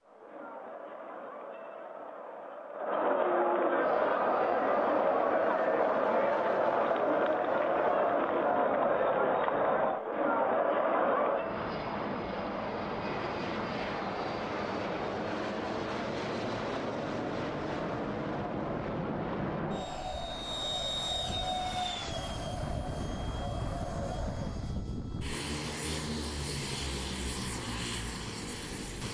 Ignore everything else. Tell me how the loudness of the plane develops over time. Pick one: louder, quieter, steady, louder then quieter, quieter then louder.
louder.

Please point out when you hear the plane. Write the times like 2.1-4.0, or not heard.
3.8-29.0.